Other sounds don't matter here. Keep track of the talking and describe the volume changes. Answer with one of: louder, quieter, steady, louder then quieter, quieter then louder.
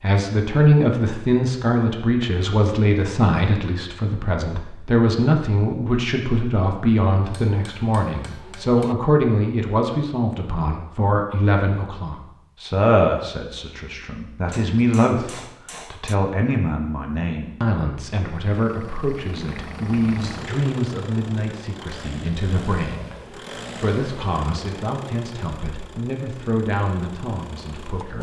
quieter.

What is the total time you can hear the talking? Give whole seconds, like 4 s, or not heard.
28 s.